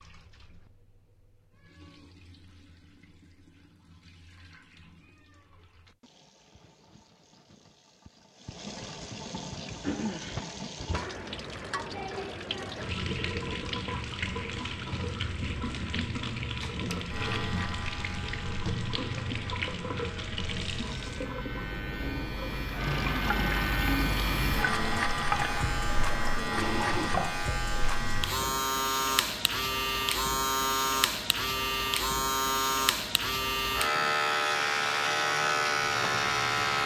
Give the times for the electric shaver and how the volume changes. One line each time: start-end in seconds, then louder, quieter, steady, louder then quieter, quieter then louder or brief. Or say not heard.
16.6-36.8 louder.